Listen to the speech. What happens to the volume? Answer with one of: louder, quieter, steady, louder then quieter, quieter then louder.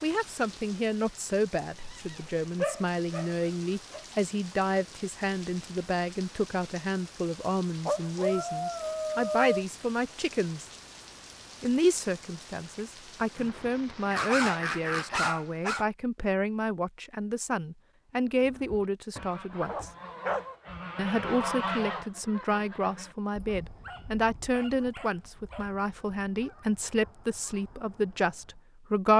steady.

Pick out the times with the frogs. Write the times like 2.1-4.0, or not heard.
not heard.